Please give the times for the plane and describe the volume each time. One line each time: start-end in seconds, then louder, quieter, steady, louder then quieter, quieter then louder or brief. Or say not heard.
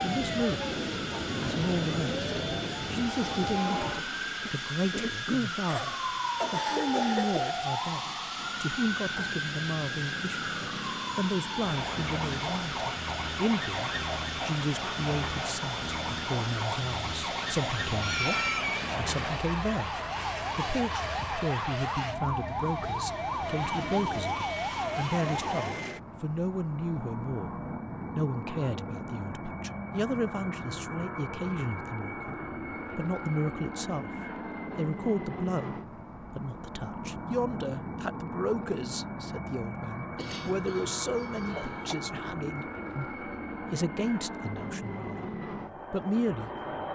0.0-46.9 steady.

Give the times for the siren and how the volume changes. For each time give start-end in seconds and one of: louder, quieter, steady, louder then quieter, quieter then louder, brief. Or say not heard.
0.0-25.9 steady.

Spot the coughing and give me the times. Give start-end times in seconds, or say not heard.
5.7-7.5, 18.0-18.9, 40.1-42.0.